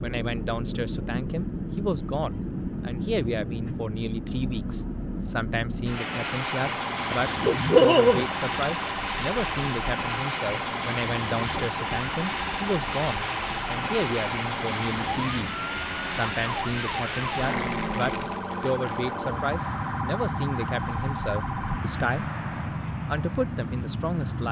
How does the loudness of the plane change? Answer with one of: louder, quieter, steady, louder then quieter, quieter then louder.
steady.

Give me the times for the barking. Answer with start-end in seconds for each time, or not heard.
7.1-8.8.